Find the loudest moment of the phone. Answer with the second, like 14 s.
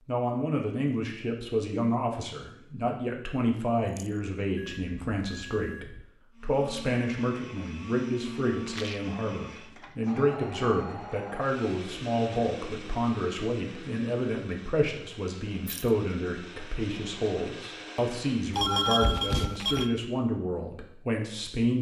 19 s.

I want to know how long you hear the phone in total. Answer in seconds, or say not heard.
3 s.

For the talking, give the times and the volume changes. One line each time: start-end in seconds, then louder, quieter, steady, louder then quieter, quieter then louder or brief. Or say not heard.
0.1-21.7 steady.